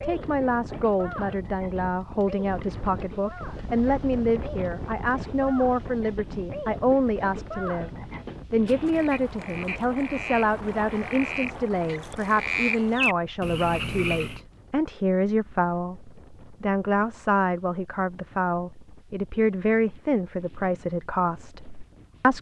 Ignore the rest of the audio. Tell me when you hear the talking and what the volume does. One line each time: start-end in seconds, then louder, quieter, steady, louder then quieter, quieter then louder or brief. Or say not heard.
0.0-7.9 steady
8.5-22.3 steady.